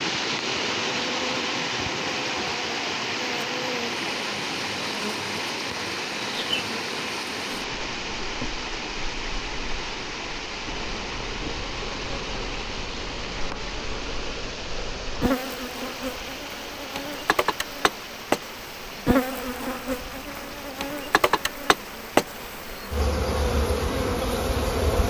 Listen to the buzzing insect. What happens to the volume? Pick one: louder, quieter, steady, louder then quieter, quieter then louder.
louder.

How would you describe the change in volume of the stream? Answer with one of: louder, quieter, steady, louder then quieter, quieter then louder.
quieter.